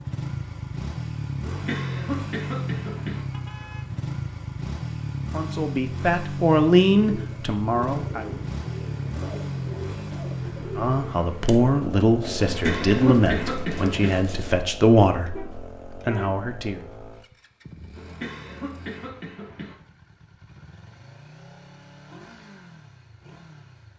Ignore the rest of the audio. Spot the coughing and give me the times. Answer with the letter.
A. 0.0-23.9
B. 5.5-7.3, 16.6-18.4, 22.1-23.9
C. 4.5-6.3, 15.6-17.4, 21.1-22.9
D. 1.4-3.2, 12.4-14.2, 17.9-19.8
D.